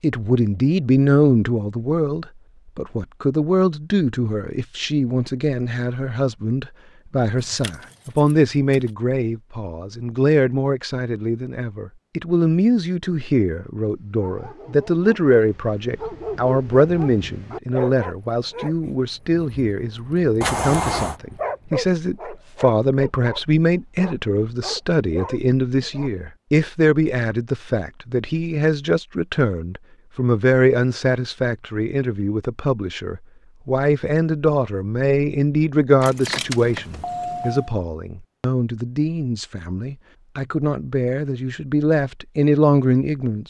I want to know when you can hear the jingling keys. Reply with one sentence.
The jingling keys can be heard from 7.4 to 8.9 s, from 20.4 to 21.2 s and from 36.0 to 37.8 s.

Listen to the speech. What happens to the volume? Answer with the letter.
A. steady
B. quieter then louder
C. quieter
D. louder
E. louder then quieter
A.